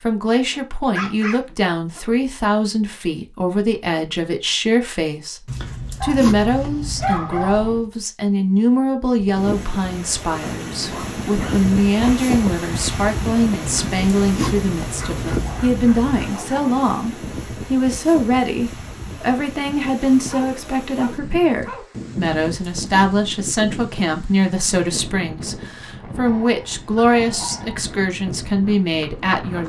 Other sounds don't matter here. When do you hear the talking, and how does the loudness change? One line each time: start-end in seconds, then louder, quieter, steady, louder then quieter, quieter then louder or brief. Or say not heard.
0.0-29.6 steady.